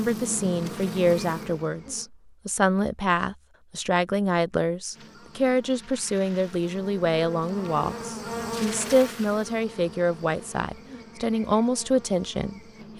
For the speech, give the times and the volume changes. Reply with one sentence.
The speech can be heard from 0.0 to 12.9 s, at a steady volume.